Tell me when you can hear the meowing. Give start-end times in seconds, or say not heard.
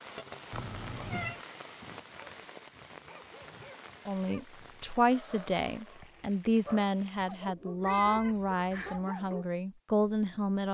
0.5-1.4, 7.8-9.1.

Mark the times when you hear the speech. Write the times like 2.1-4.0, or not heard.
4.0-10.6.